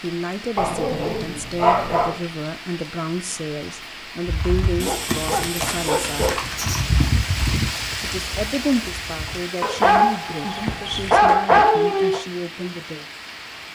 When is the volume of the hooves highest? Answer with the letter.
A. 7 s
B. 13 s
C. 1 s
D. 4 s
A.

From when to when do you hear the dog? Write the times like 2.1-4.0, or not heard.
0.6-2.2, 4.8-6.5, 9.6-12.2.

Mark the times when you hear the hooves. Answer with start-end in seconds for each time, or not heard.
4.2-9.4.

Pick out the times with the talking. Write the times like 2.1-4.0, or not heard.
0.0-6.4, 8.0-13.1.